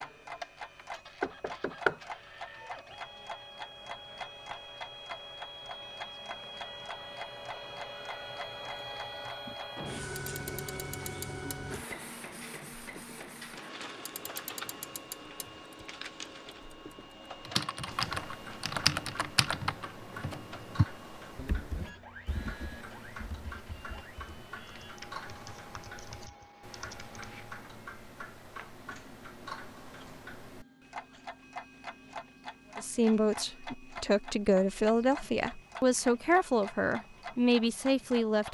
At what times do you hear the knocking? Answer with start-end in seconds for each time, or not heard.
0.8-2.0.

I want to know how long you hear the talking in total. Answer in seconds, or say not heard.
6 s.